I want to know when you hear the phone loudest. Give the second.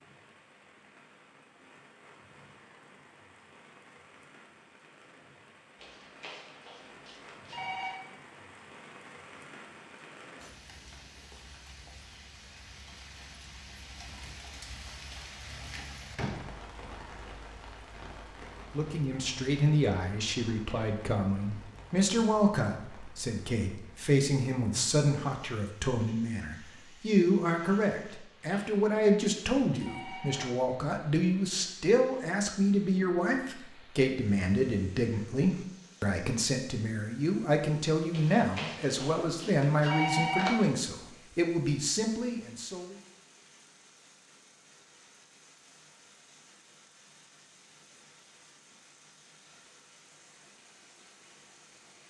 40 s.